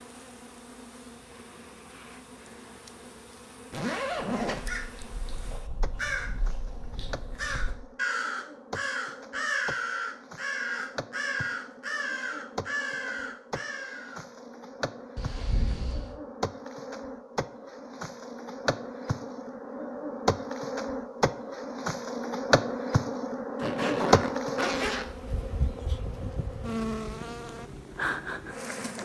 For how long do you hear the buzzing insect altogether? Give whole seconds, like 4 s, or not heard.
29 s.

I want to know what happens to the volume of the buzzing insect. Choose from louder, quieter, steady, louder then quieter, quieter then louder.
louder.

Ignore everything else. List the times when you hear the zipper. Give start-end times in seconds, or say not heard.
3.7-4.7, 15.2-16.2, 23.6-25.1.